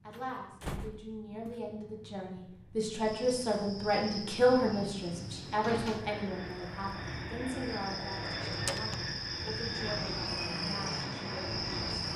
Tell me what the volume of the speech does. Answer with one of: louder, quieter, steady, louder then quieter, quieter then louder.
louder then quieter.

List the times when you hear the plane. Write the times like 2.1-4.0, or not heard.
0.0-12.1.